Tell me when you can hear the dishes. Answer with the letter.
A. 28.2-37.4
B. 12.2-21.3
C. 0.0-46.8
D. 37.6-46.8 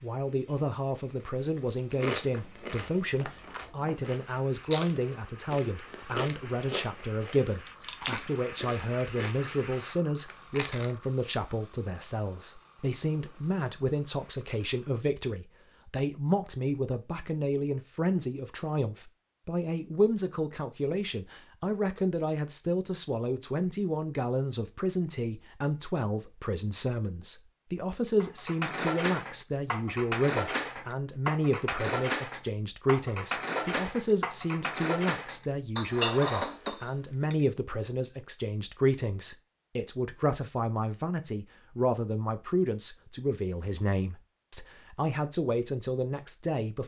A.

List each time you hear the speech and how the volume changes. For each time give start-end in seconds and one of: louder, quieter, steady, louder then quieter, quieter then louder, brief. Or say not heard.
0.0-46.8 steady.